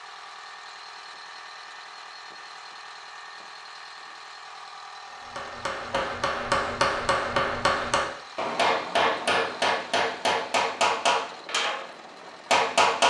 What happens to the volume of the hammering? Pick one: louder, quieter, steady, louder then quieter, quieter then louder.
steady.